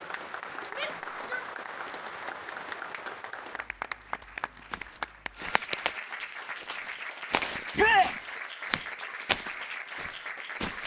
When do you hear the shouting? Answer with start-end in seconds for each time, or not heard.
0.7-1.4, 7.8-8.2.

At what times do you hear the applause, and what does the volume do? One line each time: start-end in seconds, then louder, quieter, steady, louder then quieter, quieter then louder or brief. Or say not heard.
0.0-10.8 steady.